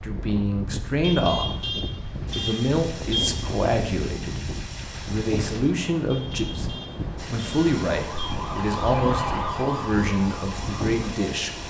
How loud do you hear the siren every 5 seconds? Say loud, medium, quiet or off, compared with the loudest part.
off, loud, medium.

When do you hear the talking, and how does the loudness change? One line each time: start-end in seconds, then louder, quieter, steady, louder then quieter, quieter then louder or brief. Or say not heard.
0.0-11.5 steady.